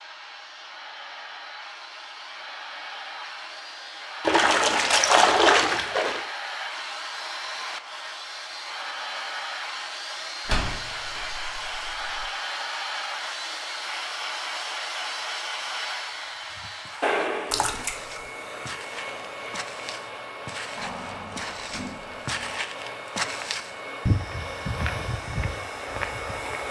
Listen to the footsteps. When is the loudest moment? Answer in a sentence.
The volume of the footsteps peaks at 24 seconds.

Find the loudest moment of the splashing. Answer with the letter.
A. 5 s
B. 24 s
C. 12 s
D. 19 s
A.